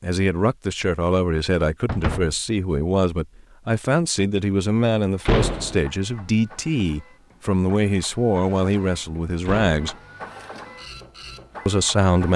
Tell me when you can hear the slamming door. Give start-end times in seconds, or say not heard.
1.9-2.3, 5.2-5.8, 9.4-10.0.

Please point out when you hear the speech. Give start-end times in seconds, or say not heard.
0.0-9.9, 11.7-12.3.